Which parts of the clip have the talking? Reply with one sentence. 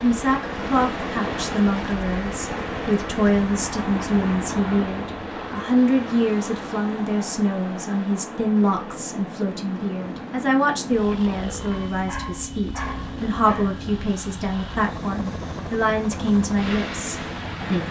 You can hear the talking from 0.0 to 17.8 s.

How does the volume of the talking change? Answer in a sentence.
The loudness of the talking stays about the same.